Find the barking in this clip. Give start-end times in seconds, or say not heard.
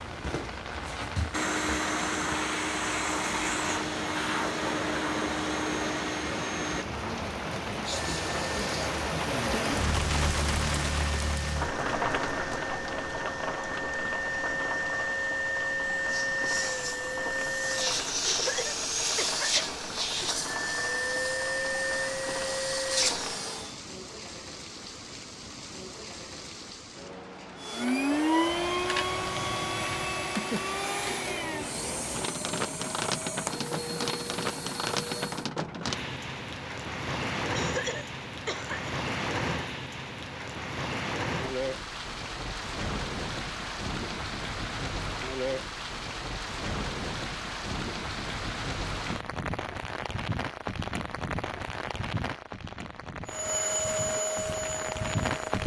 not heard.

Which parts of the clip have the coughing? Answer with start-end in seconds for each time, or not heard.
18.2-20.7, 37.5-39.0.